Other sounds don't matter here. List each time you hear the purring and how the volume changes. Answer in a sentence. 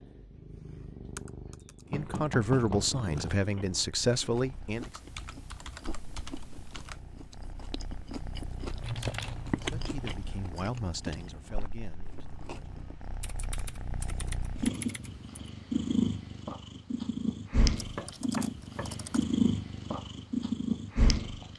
The purring can be heard from 0.0 to 21.5 s, getting quieter then louder.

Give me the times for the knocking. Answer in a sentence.
The knocking can be heard from 1.9 to 3.0 s and from 17.9 to 18.9 s.